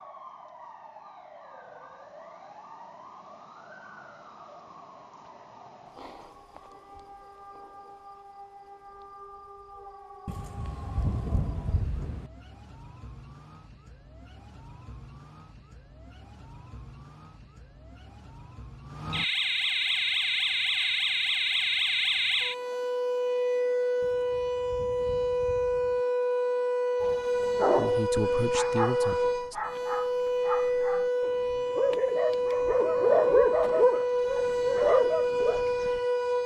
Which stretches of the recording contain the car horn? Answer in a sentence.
You can't hear the car horn here.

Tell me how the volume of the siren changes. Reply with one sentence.
The volume of the siren goes up.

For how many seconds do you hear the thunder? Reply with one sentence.
The thunder can be heard for 4 seconds in total.